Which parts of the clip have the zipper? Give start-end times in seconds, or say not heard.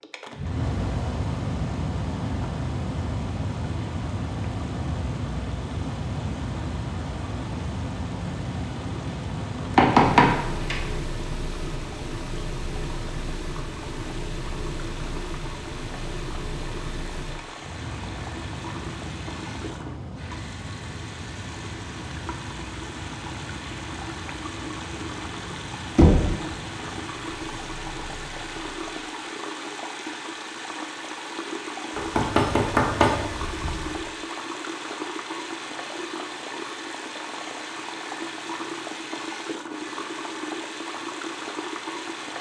not heard.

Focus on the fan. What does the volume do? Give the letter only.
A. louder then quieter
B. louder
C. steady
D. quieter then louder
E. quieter
E.